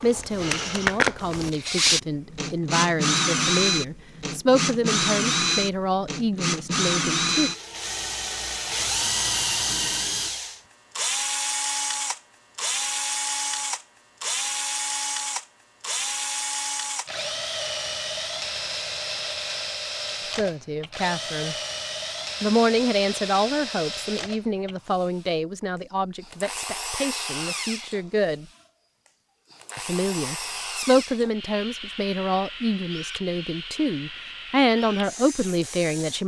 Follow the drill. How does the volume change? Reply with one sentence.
The volume of the drill goes down.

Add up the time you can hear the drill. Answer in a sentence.
You can hear the drill for 36 seconds altogether.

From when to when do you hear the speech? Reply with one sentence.
You can hear the speech from 0.0 to 7.5 s, from 20.4 to 21.6 s, from 22.4 to 28.4 s and from 29.8 to 36.2 s.